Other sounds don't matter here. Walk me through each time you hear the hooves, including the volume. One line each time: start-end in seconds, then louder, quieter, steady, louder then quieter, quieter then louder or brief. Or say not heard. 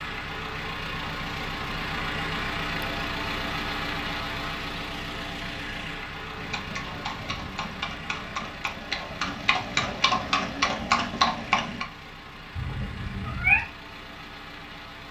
6.3-11.8 louder.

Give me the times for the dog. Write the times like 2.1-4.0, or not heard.
not heard.